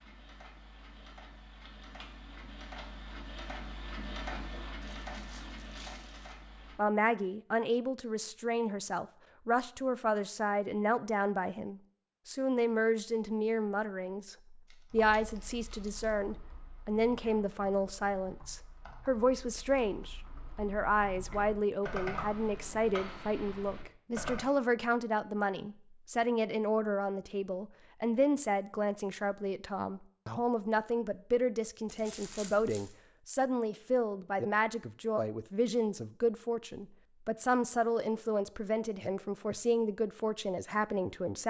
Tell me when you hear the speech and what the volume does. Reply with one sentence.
The speech can be heard from 6.8 to 41.4 s, at a steady volume.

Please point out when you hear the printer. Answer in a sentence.
You can hear the printer from 0.0 to 6.8 s.